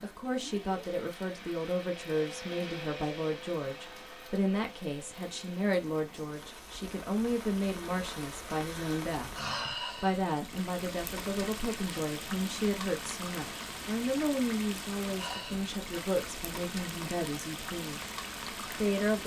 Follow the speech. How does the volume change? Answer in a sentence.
The volume of the speech stays about the same.